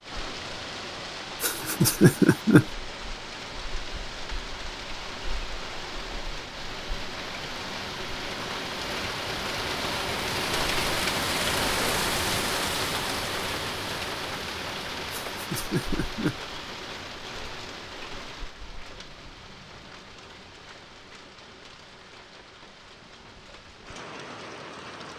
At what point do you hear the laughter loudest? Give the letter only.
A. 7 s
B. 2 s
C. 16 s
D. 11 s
B.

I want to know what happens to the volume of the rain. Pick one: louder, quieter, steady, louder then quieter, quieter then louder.
louder then quieter.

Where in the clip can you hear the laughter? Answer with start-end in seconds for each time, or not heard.
1.4-2.6, 15.3-16.4.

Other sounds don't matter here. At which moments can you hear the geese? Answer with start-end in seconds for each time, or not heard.
not heard.